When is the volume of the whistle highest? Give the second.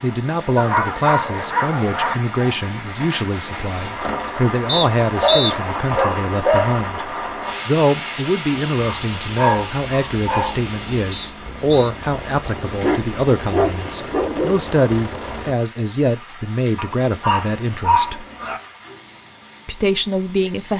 5 s.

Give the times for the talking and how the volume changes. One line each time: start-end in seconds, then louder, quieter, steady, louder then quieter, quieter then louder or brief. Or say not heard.
0.0-18.2 steady
19.6-20.7 brief.